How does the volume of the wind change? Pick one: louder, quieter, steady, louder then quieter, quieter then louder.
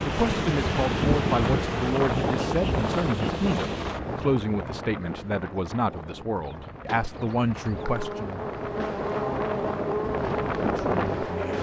quieter then louder.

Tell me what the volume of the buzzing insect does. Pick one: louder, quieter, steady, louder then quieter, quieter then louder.
quieter then louder.